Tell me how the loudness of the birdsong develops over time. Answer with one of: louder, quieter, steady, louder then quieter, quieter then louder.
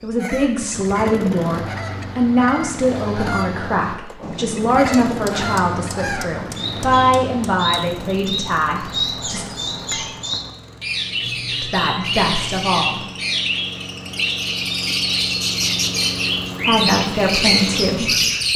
louder.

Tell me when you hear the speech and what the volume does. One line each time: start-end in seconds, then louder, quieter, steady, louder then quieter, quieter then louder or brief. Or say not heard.
0.0-9.4 steady
11.6-13.0 brief
16.6-18.5 brief.